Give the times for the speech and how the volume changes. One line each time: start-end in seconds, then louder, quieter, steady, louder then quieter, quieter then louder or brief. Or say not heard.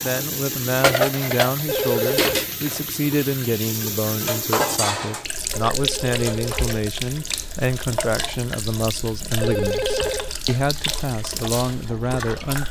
0.0-12.6 steady.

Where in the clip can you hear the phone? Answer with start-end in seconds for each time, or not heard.
1.6-2.5, 5.5-6.8, 9.4-10.3.